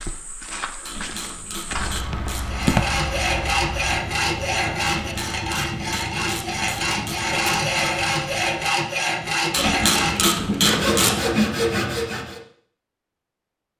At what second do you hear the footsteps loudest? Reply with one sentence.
The loudest moment of the footsteps is at 3 seconds.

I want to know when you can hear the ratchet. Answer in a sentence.
The ratchet can be heard from 0.8 to 2.7 s, from 5.0 to 7.3 s and from 9.5 to 11.2 s.